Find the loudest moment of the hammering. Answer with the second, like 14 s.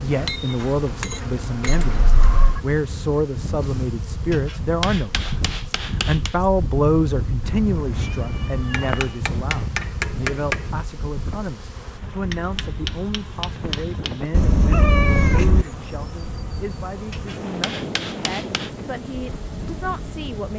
10 s.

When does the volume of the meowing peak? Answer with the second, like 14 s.
15 s.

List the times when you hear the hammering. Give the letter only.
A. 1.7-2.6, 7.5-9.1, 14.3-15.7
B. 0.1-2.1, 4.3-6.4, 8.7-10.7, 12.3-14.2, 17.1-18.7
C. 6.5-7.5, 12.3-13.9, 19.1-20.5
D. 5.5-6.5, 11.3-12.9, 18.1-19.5
B.